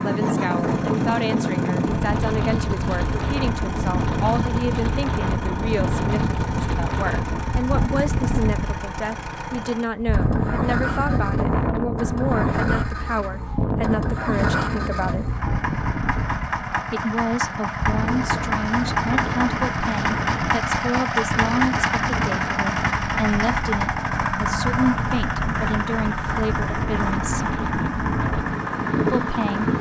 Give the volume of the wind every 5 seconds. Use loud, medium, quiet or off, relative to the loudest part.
loud, loud, loud, medium, medium, loud.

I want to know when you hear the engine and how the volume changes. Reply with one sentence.
You can hear the engine from 0.0 to 29.7 s, getting louder.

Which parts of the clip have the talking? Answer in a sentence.
The talking can be heard from 0.0 to 15.3 s, from 16.9 to 27.6 s and from 29.1 to 29.7 s.